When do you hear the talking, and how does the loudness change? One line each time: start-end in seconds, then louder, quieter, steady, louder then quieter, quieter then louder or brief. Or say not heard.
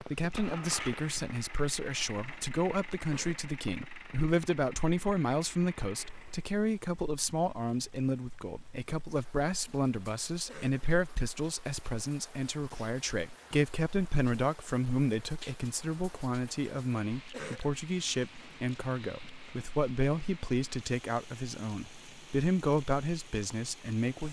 0.0-24.2 steady.